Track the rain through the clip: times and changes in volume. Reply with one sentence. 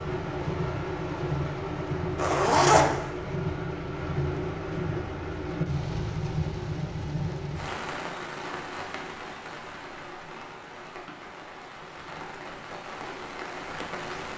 The rain can be heard from 0.0 to 14.3 s, getting quieter.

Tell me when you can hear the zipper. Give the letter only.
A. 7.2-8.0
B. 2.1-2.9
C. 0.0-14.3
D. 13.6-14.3
B.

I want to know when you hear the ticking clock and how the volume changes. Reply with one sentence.
The ticking clock can't be heard in this clip.